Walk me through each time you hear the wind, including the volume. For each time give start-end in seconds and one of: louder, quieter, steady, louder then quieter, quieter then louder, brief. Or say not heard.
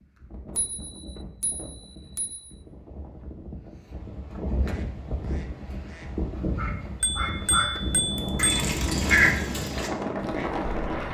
0.0-11.0 louder.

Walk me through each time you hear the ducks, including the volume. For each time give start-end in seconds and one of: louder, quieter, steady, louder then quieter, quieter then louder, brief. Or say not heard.
4.6-11.0 louder then quieter.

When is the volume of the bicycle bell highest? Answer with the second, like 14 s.
8 s.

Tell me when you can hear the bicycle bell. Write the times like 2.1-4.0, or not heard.
0.6-2.5, 7.0-8.7.